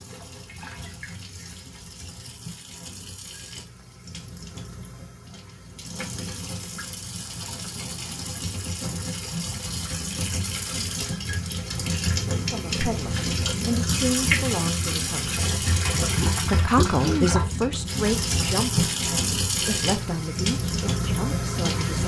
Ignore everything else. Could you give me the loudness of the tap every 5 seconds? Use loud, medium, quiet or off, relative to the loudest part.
quiet, medium, loud, loud, loud.